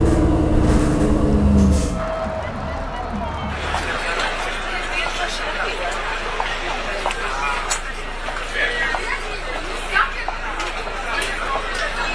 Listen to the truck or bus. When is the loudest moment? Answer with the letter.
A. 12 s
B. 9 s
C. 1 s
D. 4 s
C.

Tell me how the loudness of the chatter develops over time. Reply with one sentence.
The loudness of the chatter stays about the same.